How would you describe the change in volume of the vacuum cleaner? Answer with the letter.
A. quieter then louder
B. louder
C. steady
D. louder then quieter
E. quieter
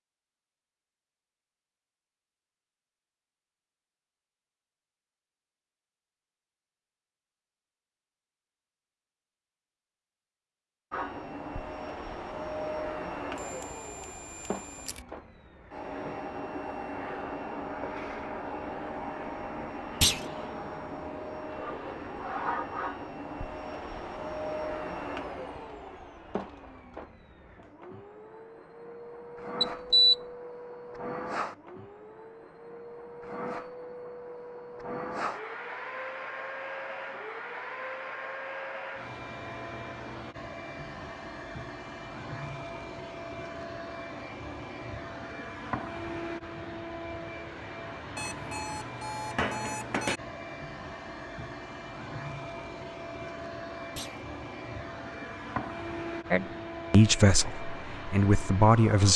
C.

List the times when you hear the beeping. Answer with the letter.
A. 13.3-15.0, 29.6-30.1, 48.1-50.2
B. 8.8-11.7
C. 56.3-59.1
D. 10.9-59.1
A.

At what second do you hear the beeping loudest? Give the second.
30 s.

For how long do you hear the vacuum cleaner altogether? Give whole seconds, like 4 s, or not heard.
48 s.